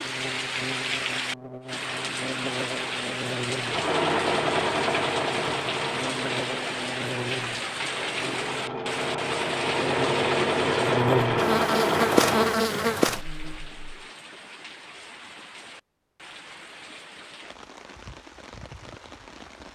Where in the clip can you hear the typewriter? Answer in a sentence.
You can't hear the typewriter here.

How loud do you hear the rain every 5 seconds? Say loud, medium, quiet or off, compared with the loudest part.
loud, loud, medium, quiet.